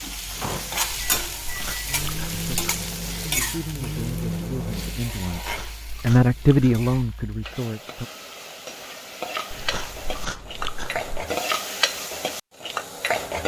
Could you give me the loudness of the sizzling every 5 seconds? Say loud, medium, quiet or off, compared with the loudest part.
loud, medium, loud.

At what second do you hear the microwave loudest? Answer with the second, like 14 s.
4 s.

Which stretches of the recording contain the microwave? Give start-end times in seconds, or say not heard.
0.0-5.0.